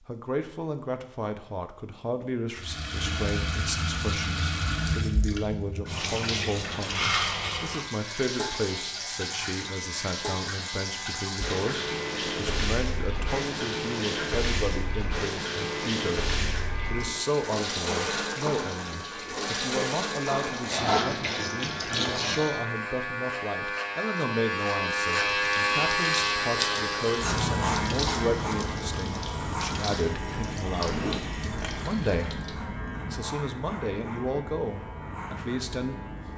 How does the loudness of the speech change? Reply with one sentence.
The volume of the speech stays about the same.